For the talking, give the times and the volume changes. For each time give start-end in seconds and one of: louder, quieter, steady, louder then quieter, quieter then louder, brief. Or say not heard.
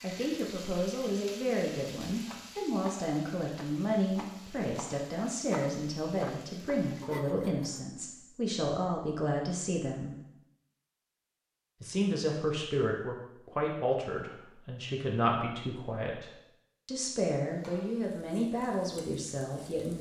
0.0-10.2 steady
11.8-19.9 steady.